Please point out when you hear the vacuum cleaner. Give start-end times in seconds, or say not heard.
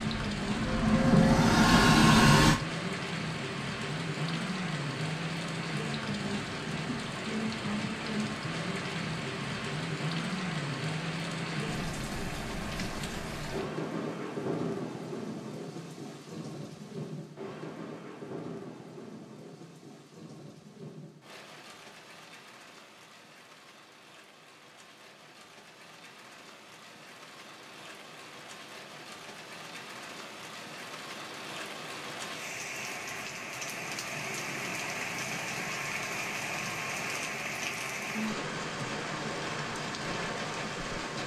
0.0-2.6.